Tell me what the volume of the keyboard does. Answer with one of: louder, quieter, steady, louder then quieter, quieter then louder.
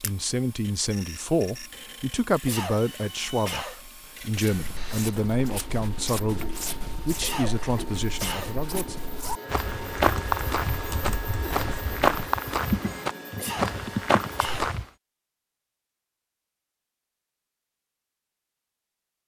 louder then quieter.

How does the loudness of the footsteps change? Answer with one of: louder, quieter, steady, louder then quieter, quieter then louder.
louder.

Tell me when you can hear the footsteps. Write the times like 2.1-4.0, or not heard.
4.2-14.9.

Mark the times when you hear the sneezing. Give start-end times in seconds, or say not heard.
2.5-3.8, 7.2-8.6, 13.3-14.8.